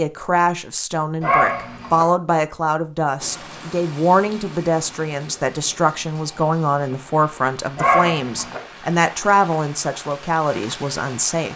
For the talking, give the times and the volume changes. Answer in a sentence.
The talking can be heard from 0.0 to 11.5 s, at a steady volume.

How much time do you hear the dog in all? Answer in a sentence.
The dog can be heard for 2 seconds in total.